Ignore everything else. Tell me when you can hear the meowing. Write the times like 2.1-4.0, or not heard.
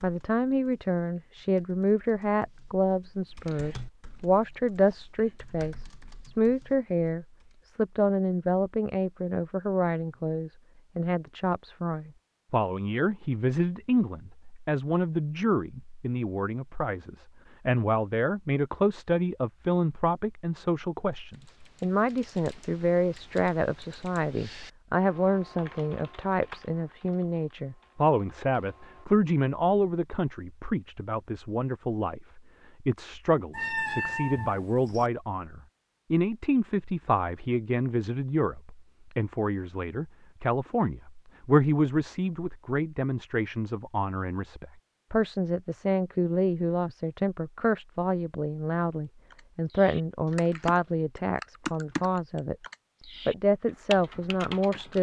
33.5-35.0.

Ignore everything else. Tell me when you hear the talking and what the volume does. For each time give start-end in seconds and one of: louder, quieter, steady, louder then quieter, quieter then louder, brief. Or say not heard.
0.0-52.5 steady
53.2-54.9 brief.